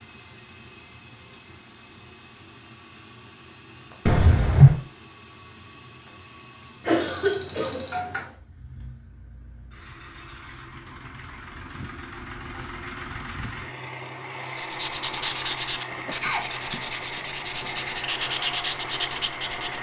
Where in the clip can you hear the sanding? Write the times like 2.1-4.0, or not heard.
14.6-19.7.